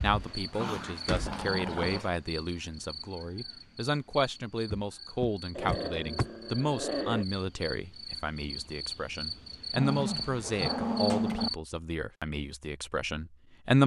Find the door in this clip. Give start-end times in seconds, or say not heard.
0.6-2.0, 4.7-6.3, 10.4-11.4.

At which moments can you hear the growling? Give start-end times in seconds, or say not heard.
0.6-2.1, 5.5-7.2, 9.7-11.5.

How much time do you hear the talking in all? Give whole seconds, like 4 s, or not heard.
14 s.